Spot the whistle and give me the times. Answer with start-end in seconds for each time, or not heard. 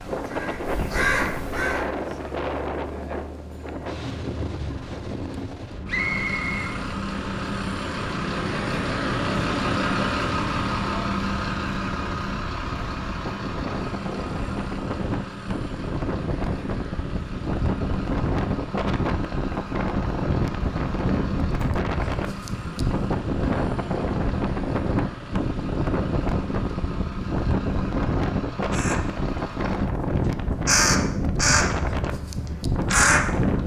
5.8-6.7.